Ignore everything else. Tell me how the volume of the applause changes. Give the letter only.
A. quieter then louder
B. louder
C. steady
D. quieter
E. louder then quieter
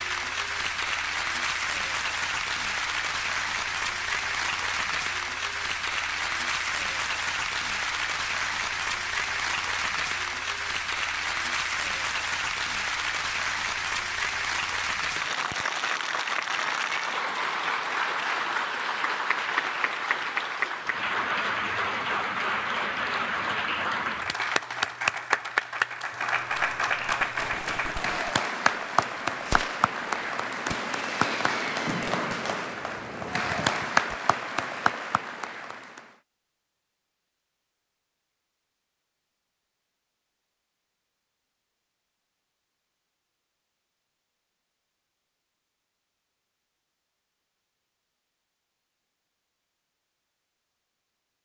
C.